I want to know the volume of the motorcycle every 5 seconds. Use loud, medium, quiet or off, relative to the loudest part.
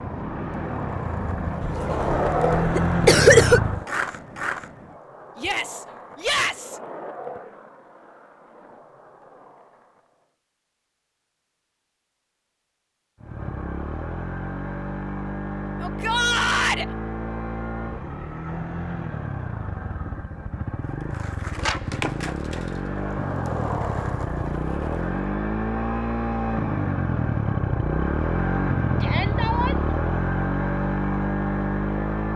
loud, off, medium, medium, medium, loud, loud.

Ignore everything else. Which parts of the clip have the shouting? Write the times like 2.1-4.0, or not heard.
5.3-6.8, 15.8-16.9, 29.0-29.9.